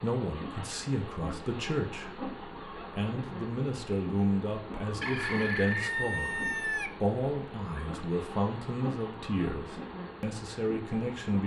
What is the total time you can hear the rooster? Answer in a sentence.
You can hear the rooster for 2 seconds altogether.